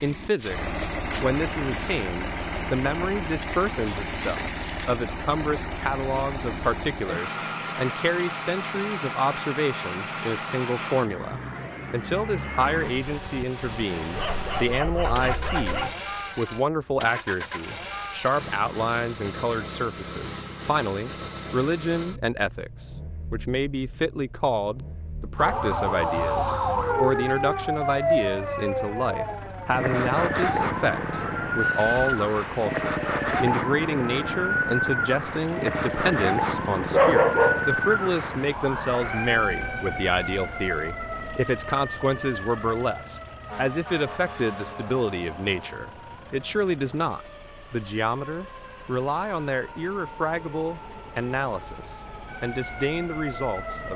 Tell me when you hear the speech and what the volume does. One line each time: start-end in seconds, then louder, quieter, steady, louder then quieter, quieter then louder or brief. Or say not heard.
0.0-53.9 steady.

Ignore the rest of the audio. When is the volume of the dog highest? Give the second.
37 s.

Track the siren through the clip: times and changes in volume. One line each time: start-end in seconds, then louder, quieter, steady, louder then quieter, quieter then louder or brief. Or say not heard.
25.4-53.9 quieter.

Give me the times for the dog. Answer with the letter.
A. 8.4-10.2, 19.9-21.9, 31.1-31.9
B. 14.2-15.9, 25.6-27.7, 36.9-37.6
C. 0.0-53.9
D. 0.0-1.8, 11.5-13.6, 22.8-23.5
B.